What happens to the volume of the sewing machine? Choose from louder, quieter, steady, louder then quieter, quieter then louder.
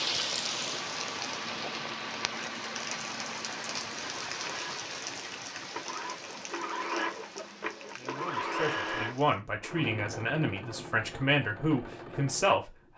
louder then quieter.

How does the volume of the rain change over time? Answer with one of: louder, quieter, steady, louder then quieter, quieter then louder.
quieter.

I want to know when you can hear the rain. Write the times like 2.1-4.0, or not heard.
0.0-9.4.